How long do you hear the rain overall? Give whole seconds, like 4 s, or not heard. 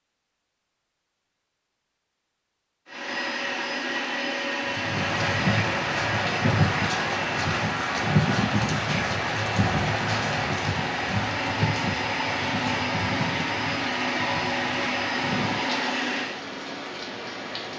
13 s.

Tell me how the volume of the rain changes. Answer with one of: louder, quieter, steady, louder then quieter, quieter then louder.
quieter.